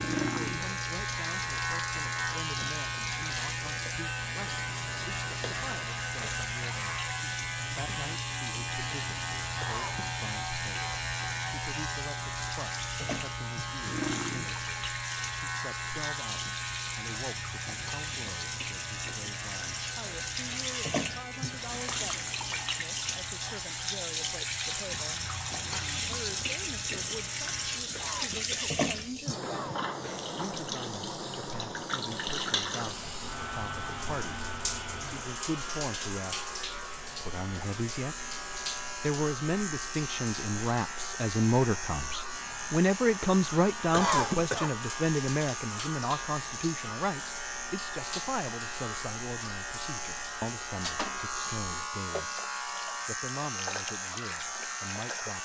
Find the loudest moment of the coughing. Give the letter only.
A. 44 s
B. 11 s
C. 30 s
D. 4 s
A.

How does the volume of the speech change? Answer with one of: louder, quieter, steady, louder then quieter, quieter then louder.
louder then quieter.